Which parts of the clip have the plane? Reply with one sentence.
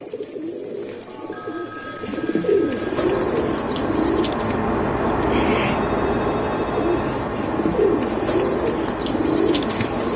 You can hear the plane from 2.6 to 10.1 s.